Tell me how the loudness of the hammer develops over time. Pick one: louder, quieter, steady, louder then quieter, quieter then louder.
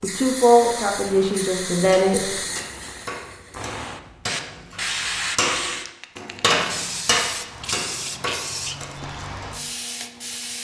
louder then quieter.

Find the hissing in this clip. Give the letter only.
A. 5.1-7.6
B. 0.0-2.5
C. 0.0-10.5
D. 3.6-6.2
C.